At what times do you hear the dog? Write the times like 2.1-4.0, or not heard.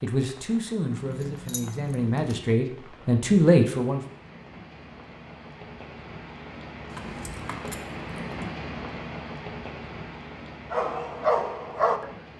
10.7-12.2.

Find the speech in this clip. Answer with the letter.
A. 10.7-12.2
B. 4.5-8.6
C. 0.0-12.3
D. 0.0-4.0
D.